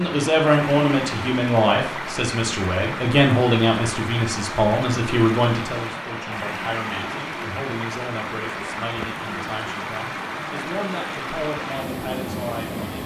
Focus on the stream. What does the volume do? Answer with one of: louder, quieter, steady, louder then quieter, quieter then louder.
steady.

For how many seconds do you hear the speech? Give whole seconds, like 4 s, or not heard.
13 s.